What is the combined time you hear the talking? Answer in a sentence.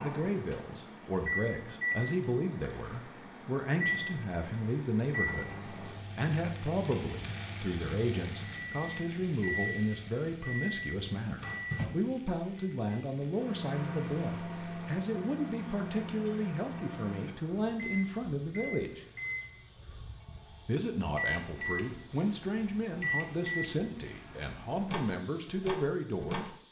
The talking can be heard for 24 seconds in total.